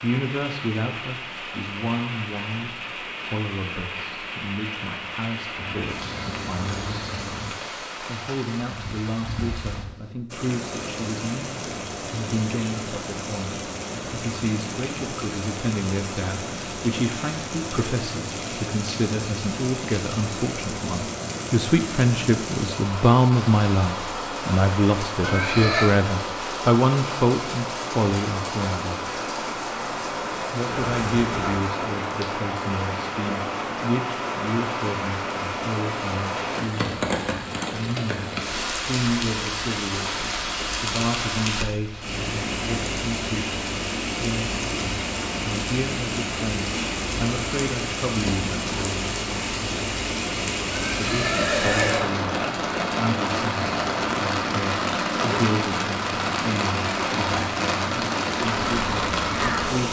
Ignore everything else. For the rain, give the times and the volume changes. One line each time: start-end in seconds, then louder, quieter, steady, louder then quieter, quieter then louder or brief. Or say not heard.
0.0-59.8 louder.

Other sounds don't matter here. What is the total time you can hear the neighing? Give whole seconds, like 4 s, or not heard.
2 s.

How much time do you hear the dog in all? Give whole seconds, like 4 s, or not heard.
not heard.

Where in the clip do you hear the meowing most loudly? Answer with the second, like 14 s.
31 s.